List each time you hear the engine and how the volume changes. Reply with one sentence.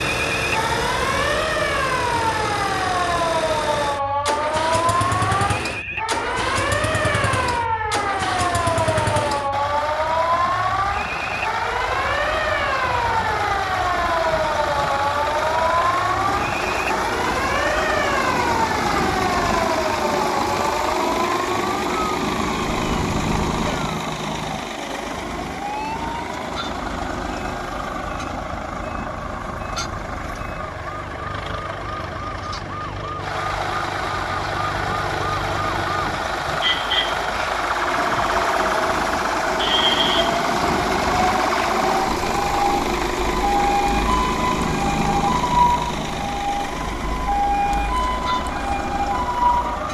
The engine can be heard from 0.0 to 49.8 s, at a steady volume.